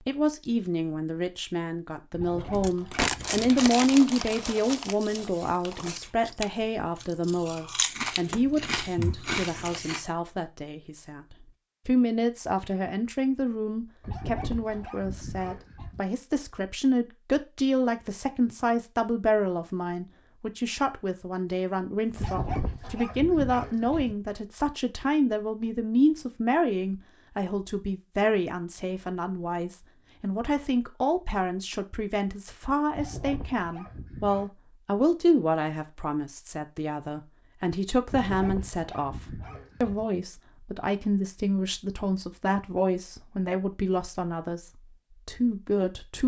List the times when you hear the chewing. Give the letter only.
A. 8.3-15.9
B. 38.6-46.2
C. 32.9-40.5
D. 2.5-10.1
D.